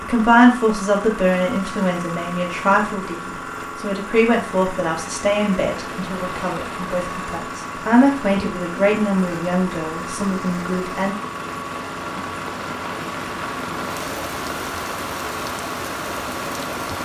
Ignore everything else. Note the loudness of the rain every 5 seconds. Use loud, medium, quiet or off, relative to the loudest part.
off, medium, loud, loud.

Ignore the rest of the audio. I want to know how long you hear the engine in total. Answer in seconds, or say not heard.
17 s.